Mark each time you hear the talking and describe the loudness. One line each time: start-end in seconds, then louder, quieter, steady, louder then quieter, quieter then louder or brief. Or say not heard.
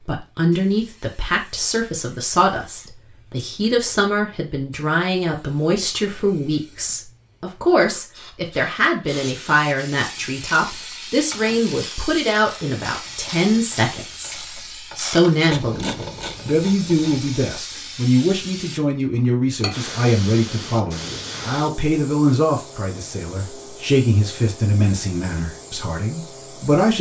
0.1-26.9 steady.